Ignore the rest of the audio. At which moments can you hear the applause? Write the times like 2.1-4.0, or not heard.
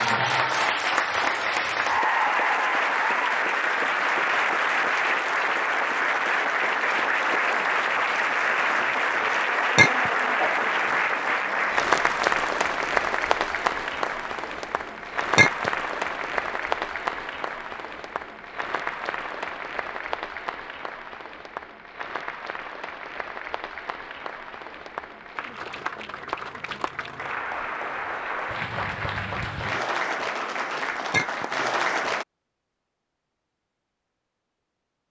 0.0-32.2.